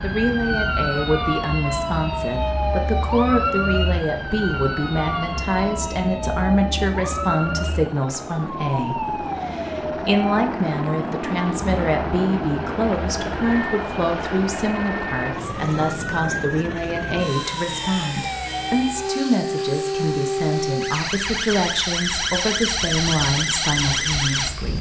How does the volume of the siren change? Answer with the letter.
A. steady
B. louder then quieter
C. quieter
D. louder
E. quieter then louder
E.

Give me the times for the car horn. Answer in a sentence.
The car horn can't be heard in this clip.